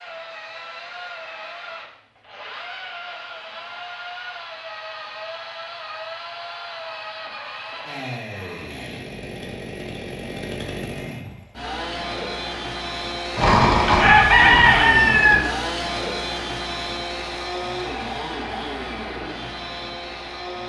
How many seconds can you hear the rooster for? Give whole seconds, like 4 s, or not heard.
2 s.